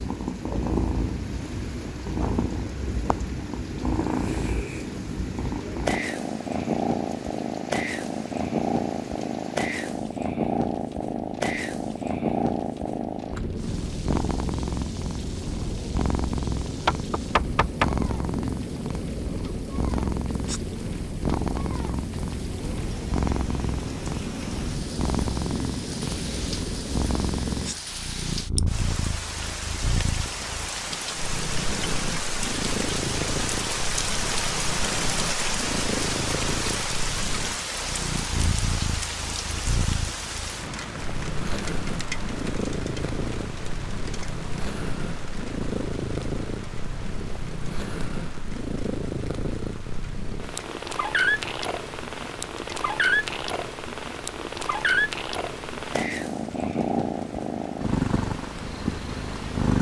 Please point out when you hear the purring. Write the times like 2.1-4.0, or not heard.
0.0-59.7.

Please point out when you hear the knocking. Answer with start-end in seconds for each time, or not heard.
16.9-17.9.